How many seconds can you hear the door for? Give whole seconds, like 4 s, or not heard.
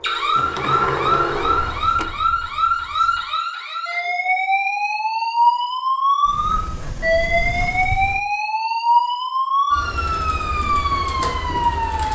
4 s.